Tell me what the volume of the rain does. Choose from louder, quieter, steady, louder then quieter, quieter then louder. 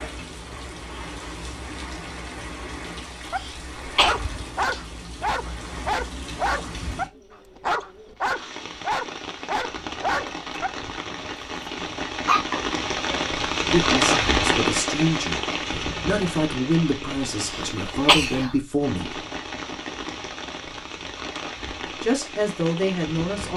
louder then quieter.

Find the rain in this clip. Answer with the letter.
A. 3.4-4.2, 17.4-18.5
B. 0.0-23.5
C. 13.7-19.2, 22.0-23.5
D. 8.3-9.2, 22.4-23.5
B.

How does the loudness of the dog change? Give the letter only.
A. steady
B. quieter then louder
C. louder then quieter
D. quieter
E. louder
A.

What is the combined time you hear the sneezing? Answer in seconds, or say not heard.
2 s.